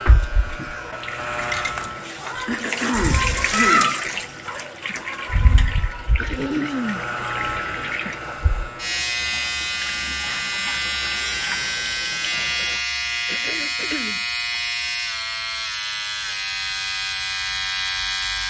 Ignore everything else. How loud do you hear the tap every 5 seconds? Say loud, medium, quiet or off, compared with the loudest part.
loud, medium, medium, off.